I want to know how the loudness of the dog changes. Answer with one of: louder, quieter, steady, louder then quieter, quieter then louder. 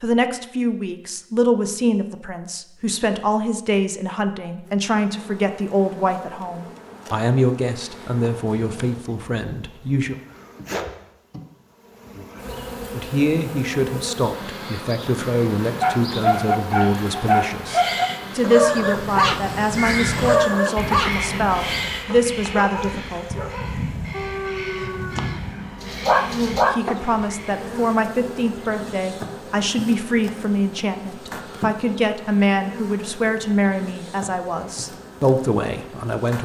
quieter then louder.